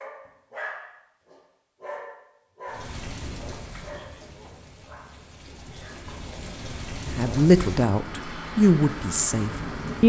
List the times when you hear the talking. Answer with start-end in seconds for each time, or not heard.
7.0-10.0.